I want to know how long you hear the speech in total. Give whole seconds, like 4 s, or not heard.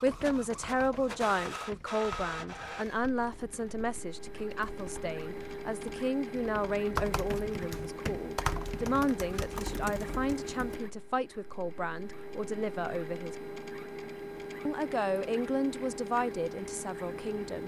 16 s.